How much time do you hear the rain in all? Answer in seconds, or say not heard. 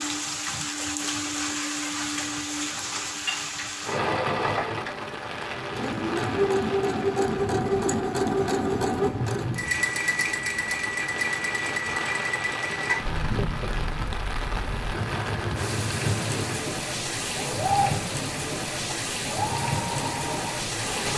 21 s.